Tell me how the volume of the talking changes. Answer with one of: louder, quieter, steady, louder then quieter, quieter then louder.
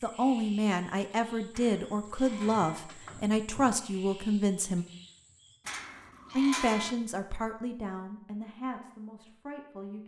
quieter.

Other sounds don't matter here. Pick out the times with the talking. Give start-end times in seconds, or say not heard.
0.0-4.8, 6.3-10.0.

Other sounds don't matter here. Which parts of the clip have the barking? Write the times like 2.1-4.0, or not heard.
not heard.